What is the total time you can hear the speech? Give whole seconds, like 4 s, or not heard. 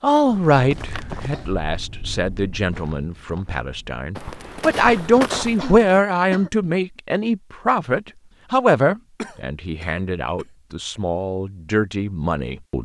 13 s.